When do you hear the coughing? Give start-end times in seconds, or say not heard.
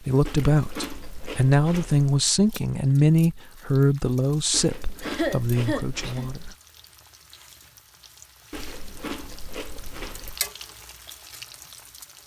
5.0-6.3.